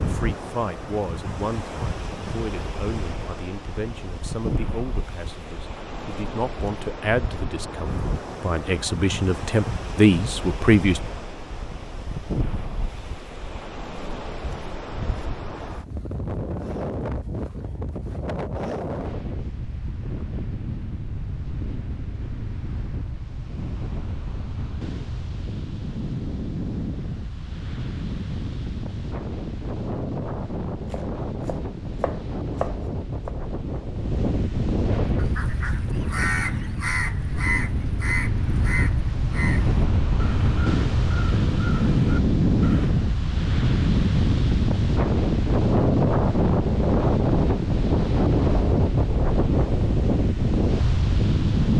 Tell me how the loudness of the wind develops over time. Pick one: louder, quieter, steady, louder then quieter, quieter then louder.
louder.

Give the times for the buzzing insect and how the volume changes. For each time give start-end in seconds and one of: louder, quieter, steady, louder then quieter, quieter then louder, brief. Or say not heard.
not heard.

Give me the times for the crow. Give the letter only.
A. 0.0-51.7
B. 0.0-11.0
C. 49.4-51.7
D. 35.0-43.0
D.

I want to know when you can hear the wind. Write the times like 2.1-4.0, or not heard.
0.0-51.7.